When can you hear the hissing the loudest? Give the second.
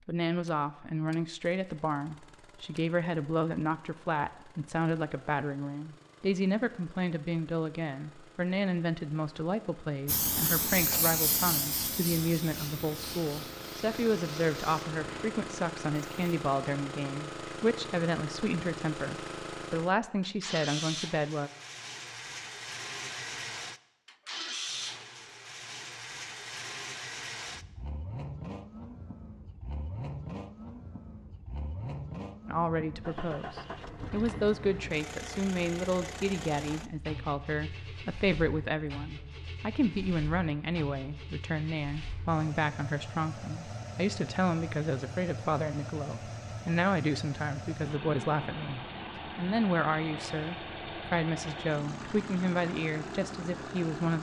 11 s.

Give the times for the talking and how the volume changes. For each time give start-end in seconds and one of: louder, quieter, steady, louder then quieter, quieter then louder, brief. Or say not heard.
0.1-21.5 steady
32.5-54.1 steady.